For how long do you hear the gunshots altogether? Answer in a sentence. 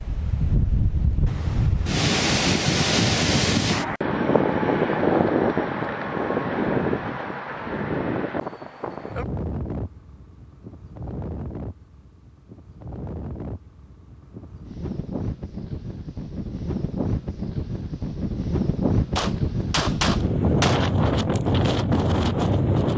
You can hear the gunshots for 2 seconds altogether.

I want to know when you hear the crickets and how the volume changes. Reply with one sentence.
You can't hear the crickets here.